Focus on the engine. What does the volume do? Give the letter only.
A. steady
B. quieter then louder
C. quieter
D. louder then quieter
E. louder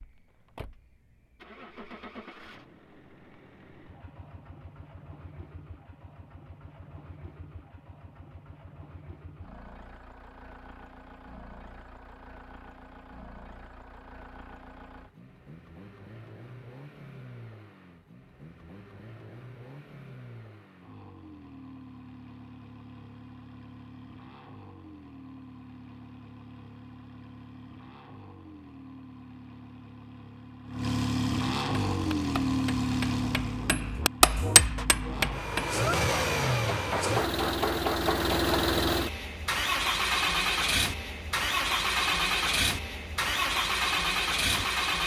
E.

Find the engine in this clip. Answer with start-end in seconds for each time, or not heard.
0.0-45.0.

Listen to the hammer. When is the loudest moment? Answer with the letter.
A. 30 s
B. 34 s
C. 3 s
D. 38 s
B.